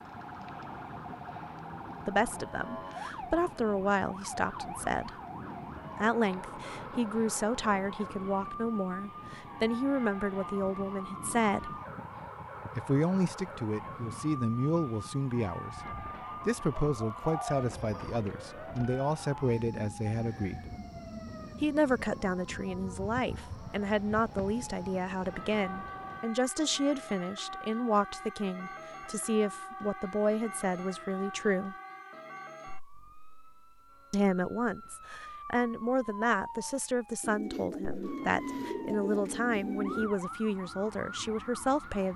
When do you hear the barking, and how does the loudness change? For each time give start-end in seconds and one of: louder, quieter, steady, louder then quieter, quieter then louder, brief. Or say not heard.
not heard.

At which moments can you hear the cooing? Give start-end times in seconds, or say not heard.
16.9-18.2, 37.2-40.1.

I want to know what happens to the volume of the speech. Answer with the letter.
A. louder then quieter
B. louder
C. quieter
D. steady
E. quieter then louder
D.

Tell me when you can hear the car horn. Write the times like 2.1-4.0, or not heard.
not heard.